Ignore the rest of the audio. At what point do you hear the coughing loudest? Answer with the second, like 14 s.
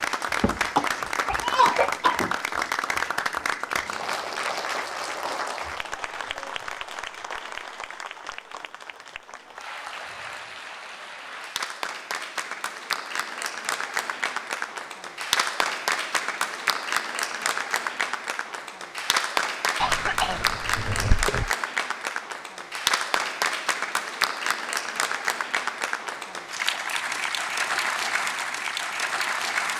2 s.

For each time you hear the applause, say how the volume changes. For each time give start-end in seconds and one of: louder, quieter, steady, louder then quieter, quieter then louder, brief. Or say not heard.
0.0-29.7 quieter then louder.